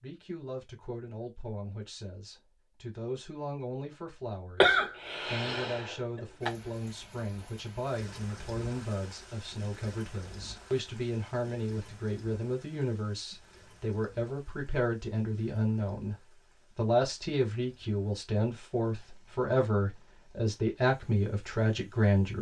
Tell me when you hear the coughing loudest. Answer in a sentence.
The volume of the coughing peaks at 5 seconds.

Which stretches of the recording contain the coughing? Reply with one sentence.
You can hear the coughing from 4.6 to 6.5 s.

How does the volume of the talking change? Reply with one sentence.
The loudness of the talking goes up.